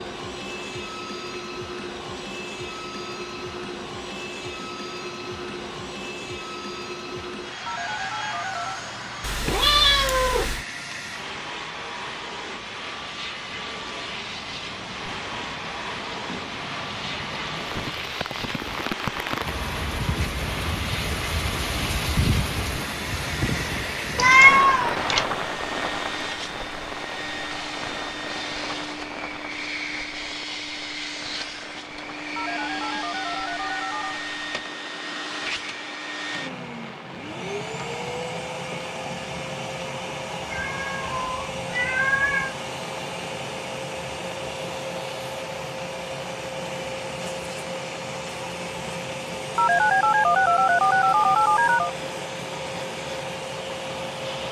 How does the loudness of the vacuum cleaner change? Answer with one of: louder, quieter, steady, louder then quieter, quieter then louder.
steady.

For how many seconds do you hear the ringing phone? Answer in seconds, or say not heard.
5 s.